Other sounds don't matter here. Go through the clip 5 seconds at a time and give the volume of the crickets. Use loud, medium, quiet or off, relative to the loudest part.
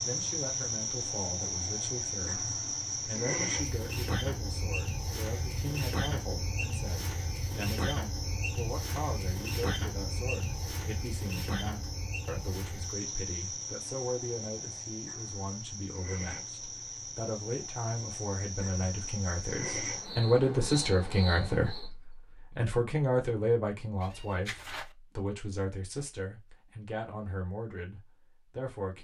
loud, loud, medium, medium, medium, off.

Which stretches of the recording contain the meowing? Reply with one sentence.
You can hear the meowing from 24.0 to 24.9 s.